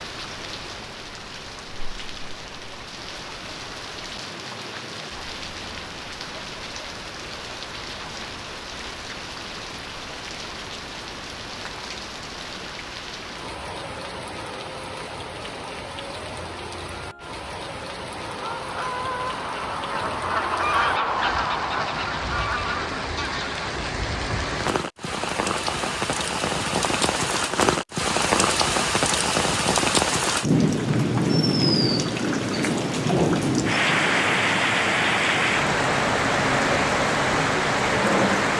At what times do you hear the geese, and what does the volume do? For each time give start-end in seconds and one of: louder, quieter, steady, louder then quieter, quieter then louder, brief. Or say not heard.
18.2-24.6 louder then quieter.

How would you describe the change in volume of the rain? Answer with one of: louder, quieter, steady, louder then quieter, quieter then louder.
louder.